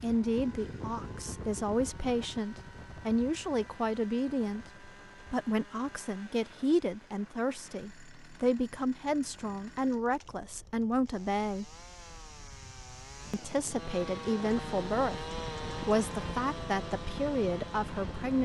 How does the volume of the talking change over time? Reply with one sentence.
The volume of the talking stays about the same.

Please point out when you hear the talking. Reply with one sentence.
You can hear the talking from 0.0 to 11.8 s and from 13.3 to 18.4 s.